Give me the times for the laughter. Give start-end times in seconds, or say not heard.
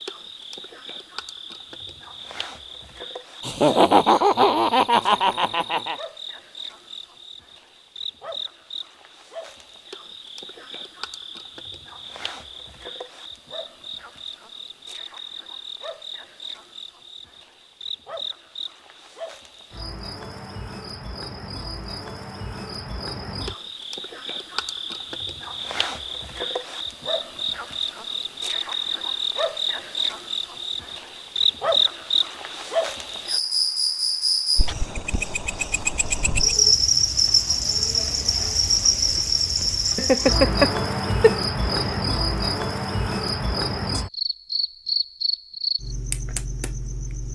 3.4-6.0, 40.0-42.0.